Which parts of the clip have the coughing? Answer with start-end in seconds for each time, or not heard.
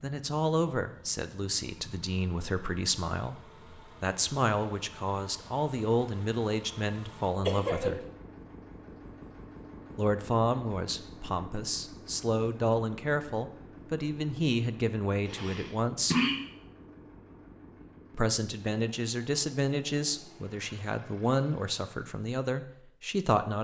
7.5-8.0, 15.2-16.4.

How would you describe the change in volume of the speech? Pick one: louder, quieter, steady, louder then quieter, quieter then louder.
steady.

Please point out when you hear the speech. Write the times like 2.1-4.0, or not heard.
0.0-8.0, 9.9-16.1, 18.1-23.5.